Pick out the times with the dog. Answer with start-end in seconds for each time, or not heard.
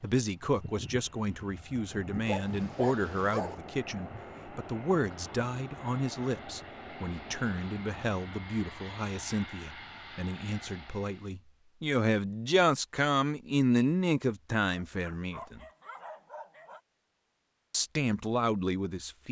2.2-3.5, 14.7-16.8.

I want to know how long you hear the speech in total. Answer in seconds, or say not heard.
17 s.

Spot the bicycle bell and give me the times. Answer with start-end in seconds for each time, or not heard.
not heard.